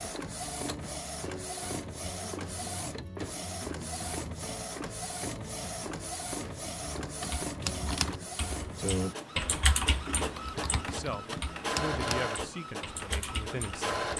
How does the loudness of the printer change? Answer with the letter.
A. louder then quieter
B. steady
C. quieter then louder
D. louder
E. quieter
B.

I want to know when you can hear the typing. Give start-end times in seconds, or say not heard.
6.8-14.1.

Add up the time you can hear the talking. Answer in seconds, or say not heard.
3 s.